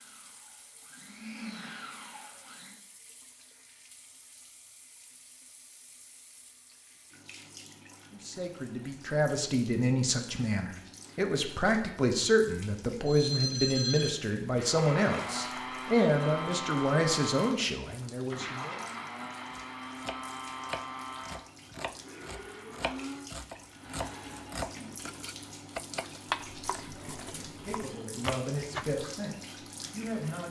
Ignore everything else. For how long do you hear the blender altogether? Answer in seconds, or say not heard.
13 s.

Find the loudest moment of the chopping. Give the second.
26 s.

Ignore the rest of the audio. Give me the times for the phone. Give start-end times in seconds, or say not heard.
13.1-14.2.